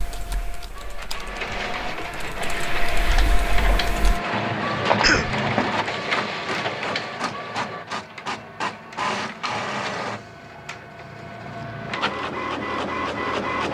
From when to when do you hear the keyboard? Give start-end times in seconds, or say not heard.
0.0-4.2.